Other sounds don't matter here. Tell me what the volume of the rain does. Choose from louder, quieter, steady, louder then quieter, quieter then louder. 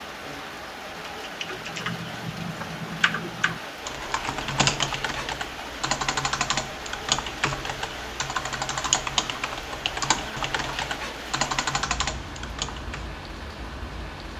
steady.